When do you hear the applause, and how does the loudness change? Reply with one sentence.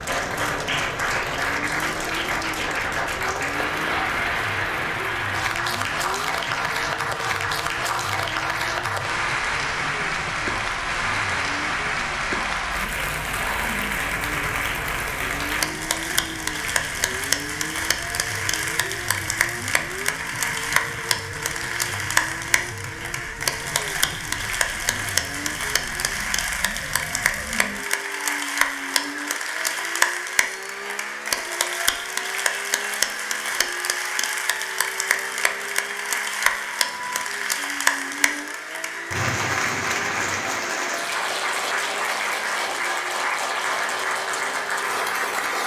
You can hear the applause from 0.0 to 45.6 s, at a steady volume.